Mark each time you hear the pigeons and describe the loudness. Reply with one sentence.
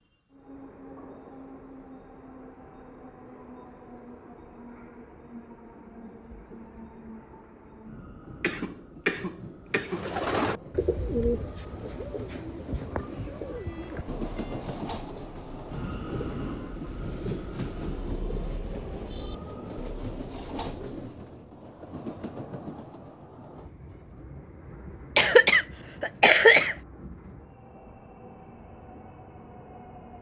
The pigeons can be heard from 9.8 to 21.1 s, getting quieter.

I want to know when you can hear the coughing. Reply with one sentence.
The coughing can be heard from 8.4 to 10.2 s and from 25.1 to 26.8 s.